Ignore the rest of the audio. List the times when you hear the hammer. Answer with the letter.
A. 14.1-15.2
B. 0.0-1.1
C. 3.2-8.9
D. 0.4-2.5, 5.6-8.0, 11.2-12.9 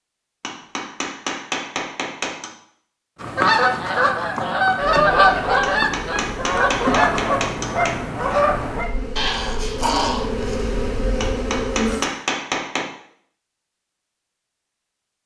D.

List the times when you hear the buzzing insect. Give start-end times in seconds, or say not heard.
4.8-12.1.